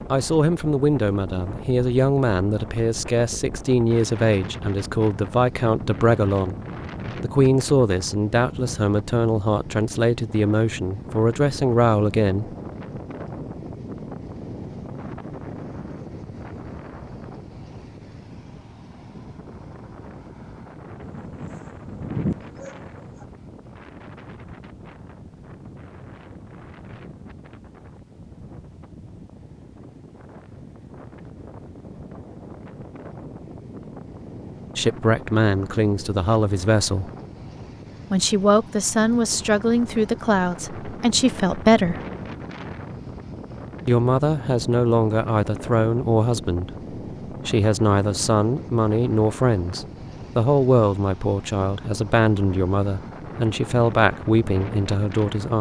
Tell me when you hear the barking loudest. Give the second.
22 s.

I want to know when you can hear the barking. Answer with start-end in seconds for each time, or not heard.
21.0-23.2.